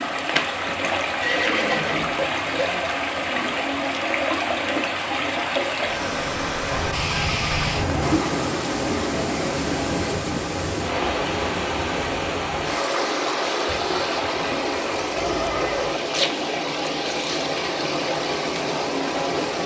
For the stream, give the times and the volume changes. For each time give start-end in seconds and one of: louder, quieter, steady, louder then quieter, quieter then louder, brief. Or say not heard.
0.0-19.6 steady.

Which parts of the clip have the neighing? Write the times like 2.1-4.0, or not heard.
1.2-2.1, 6.7-8.2, 15.2-16.0.